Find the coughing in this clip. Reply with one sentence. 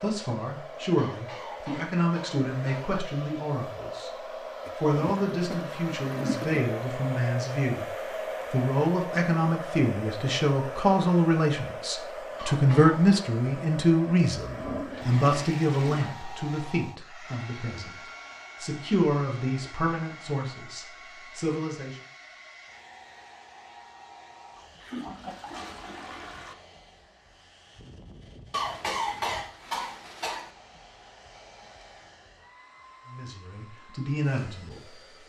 The coughing can be heard from 0.9 to 3.0 s, from 12.3 to 13.0 s and from 28.5 to 30.5 s.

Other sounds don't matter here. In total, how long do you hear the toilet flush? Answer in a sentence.
You can hear the toilet flush for 6 seconds altogether.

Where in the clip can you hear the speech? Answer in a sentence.
The speech can be heard from 0.0 to 4.2 s, from 4.8 to 17.9 s, from 18.6 to 21.9 s and from 33.1 to 35.0 s.